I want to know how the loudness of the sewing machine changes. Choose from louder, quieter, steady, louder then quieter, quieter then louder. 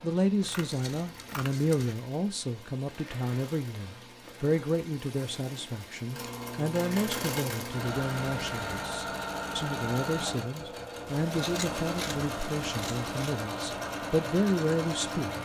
louder.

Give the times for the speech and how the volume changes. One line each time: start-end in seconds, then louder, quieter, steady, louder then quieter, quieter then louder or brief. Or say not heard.
0.0-15.4 steady.